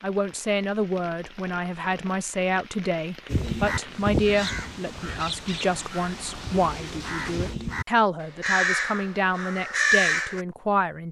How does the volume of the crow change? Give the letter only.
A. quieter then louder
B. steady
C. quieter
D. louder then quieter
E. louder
A.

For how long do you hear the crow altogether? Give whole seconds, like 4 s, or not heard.
7 s.